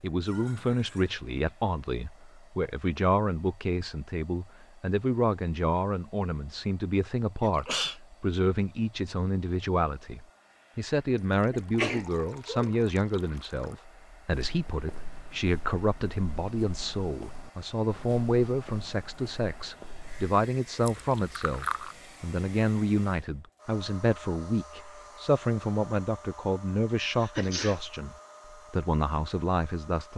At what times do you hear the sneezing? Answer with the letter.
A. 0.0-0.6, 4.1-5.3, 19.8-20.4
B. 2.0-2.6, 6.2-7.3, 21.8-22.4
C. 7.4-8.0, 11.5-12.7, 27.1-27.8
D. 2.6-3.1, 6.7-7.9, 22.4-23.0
C.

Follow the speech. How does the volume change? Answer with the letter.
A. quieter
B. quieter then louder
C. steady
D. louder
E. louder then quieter
C.